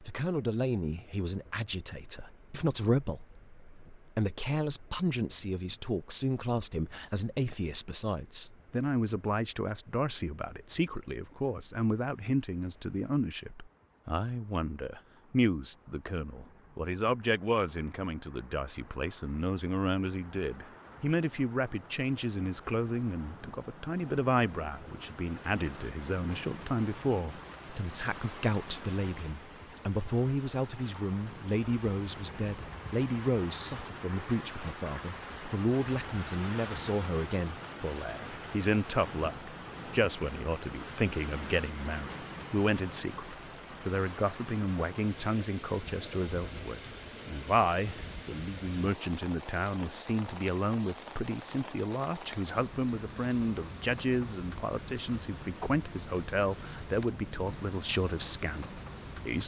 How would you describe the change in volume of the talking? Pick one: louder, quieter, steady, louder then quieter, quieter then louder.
steady.